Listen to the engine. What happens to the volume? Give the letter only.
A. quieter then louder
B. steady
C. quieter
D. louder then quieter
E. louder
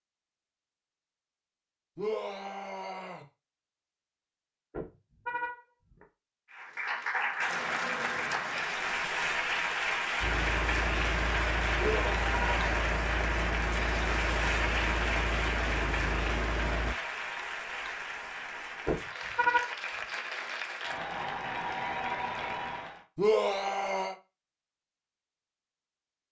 B.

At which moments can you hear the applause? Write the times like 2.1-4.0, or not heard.
6.5-23.1.